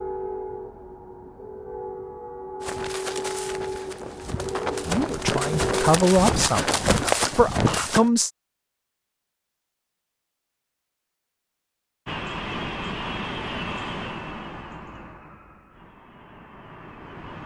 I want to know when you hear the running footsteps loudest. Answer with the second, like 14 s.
7 s.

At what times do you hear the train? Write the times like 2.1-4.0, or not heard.
0.0-6.0, 12.1-17.4.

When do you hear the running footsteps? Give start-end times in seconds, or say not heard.
2.6-8.1.